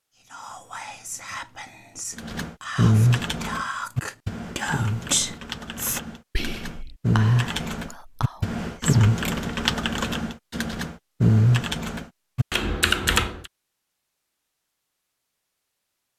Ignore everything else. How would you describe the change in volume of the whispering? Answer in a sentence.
The loudness of the whispering goes up, then down.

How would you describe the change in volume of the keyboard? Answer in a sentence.
The volume of the keyboard goes down, then up.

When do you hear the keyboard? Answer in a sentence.
You can hear the keyboard from 2.1 to 13.5 s.